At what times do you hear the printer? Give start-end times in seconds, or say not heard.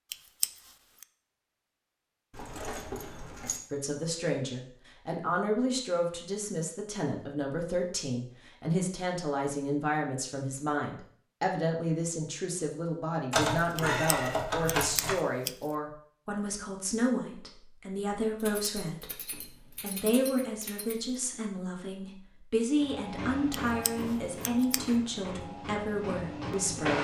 22.8-26.9.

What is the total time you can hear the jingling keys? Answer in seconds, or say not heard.
6 s.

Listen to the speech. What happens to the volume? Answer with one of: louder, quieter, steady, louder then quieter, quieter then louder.
steady.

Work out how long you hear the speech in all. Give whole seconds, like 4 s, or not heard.
23 s.